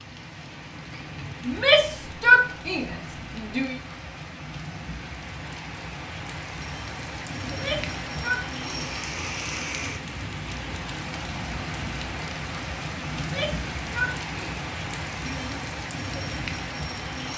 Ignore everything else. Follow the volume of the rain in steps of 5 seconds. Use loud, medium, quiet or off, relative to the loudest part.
medium, loud, loud, loud.